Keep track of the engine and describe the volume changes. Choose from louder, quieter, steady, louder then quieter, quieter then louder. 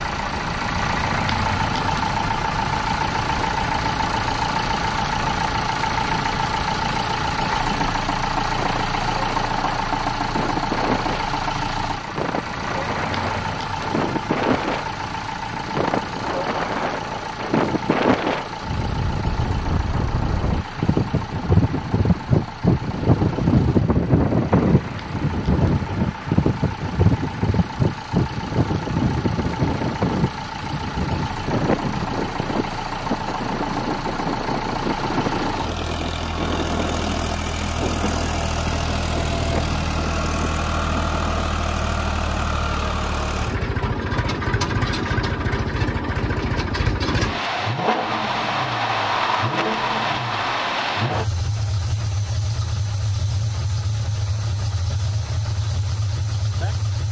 quieter then louder.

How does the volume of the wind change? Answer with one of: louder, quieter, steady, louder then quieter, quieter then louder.
louder then quieter.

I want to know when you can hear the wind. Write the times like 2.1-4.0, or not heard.
0.0-41.5.